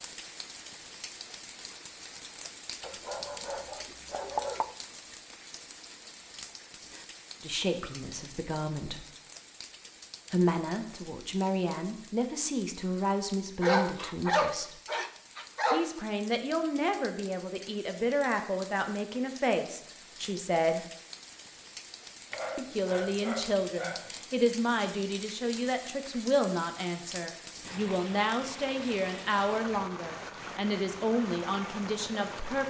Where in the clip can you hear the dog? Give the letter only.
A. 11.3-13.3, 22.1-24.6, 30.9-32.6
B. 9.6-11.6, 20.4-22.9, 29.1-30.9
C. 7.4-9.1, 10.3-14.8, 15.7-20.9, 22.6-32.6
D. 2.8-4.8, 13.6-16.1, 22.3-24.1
D.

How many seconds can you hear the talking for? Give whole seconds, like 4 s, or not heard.
21 s.